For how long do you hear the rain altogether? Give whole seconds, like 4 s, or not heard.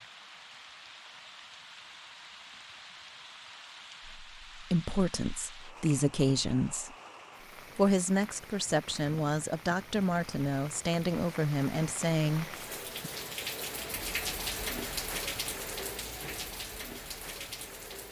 18 s.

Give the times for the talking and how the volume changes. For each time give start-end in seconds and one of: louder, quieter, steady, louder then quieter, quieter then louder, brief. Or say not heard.
4.0-7.0 brief
7.8-13.1 steady.